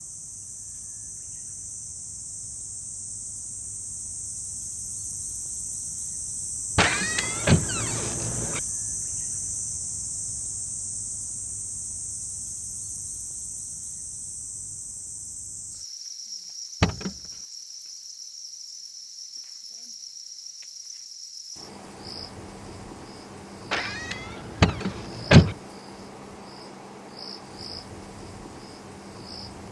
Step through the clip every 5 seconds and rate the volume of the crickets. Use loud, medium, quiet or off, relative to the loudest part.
medium, loud, loud, medium, medium, medium.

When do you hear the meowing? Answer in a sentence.
You can hear the meowing from 6.8 to 8.6 s and from 23.7 to 25.6 s.